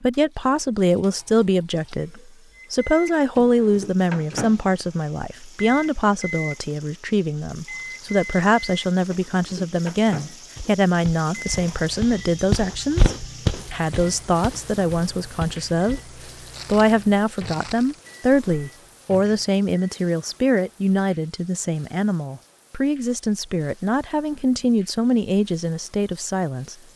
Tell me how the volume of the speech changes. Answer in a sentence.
The loudness of the speech stays about the same.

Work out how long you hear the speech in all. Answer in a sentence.
The speech can be heard for 26 seconds in total.